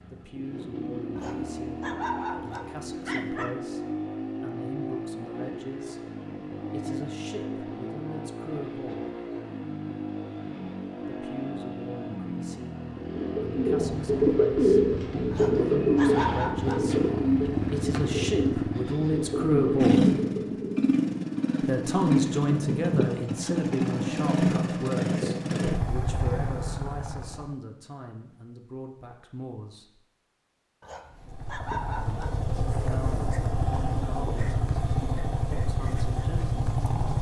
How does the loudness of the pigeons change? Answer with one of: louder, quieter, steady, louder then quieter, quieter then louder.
quieter.